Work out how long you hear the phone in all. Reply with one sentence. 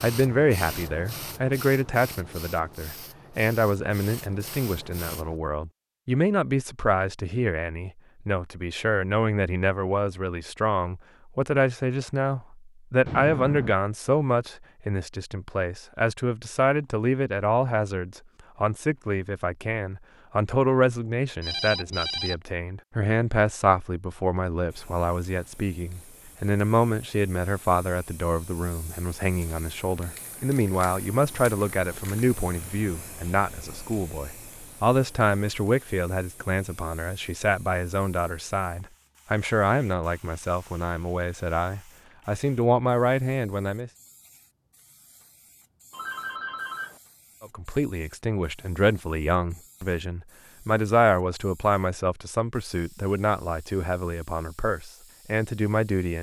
The phone can be heard for 3 seconds in total.